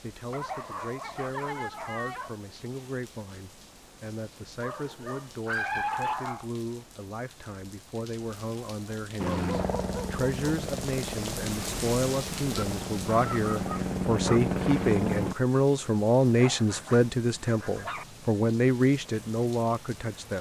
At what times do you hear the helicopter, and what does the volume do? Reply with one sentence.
You can hear the helicopter from 9.2 to 15.3 s, getting louder.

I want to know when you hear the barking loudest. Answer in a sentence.
The loudest moment of the barking is at 6 seconds.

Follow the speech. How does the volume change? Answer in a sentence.
The volume of the speech goes up.